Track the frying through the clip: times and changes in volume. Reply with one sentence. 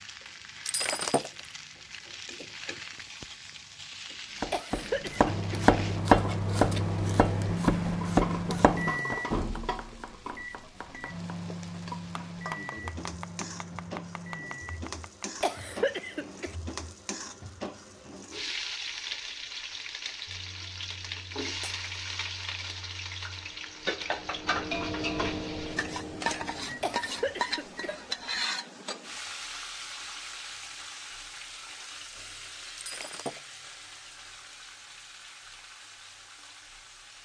You can hear the frying from 0.0 to 37.2 s, getting louder then quieter.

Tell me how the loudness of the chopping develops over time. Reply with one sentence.
The loudness of the chopping goes down.